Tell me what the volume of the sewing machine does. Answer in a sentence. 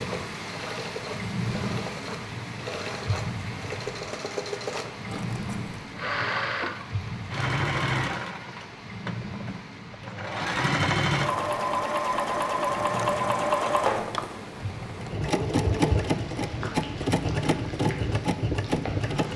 The loudness of the sewing machine goes up.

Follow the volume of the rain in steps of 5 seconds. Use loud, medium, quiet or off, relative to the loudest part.
loud, loud, medium, medium.